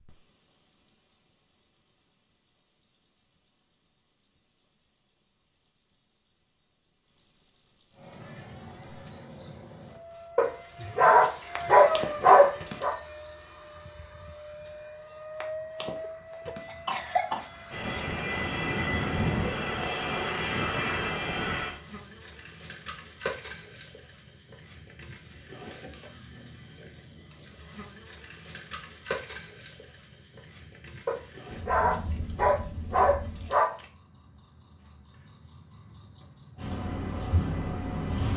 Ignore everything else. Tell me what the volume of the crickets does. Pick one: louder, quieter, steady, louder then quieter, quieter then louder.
louder then quieter.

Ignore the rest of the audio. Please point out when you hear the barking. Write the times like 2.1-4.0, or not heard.
10.3-12.9, 31.1-33.9.